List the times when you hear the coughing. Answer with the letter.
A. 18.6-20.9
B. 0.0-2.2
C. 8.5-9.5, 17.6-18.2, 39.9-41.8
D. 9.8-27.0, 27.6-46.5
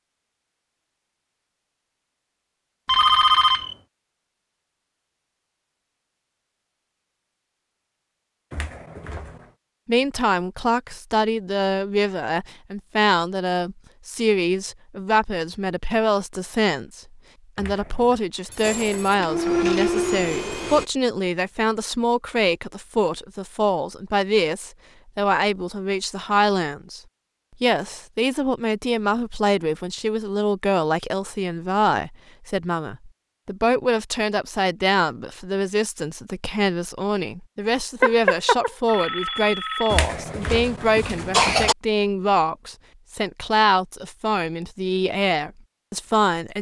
C.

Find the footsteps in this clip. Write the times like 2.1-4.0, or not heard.
not heard.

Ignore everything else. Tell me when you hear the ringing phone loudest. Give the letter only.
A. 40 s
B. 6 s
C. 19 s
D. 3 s
D.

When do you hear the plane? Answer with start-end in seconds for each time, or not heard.
18.6-20.9.